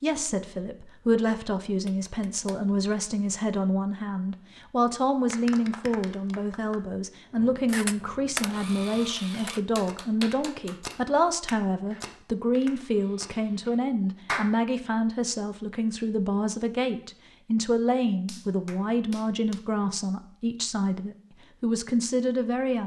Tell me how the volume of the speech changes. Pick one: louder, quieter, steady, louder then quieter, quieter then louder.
steady.